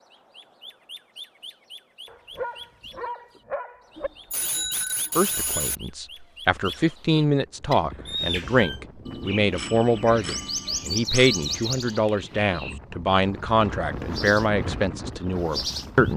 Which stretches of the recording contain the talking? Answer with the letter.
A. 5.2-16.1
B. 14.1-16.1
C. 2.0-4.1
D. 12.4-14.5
A.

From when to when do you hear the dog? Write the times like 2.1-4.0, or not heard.
2.0-4.1.